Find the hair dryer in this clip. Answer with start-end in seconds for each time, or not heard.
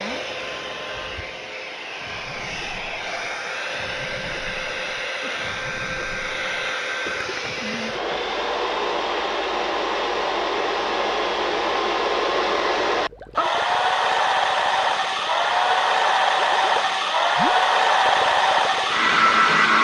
0.0-19.8.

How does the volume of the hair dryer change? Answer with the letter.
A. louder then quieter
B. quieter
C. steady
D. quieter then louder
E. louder
E.